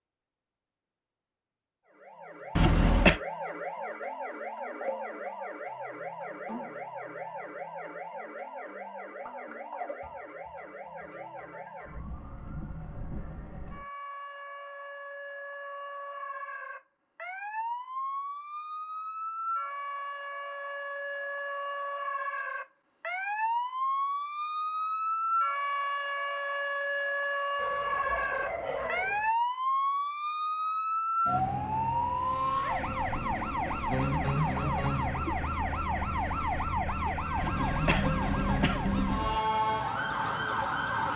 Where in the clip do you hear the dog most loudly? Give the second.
29 s.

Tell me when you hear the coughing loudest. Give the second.
3 s.